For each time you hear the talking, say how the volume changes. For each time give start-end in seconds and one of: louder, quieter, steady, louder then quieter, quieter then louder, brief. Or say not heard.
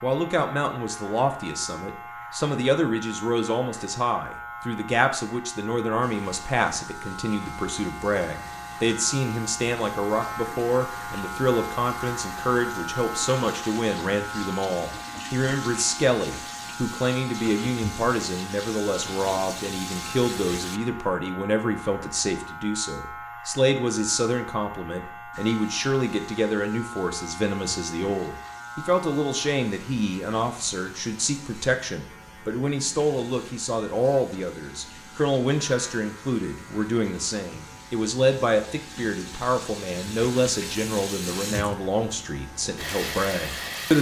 0.0-43.9 steady.